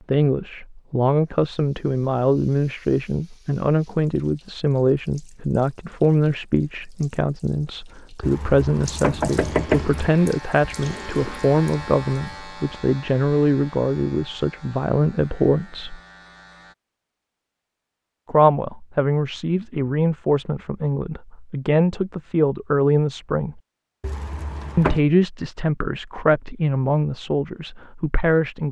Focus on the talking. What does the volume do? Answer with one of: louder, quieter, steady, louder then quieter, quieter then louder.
steady.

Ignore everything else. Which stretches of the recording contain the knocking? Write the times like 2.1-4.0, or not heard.
8.2-10.2, 24.0-25.0.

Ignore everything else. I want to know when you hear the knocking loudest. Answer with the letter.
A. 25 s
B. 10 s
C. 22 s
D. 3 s
B.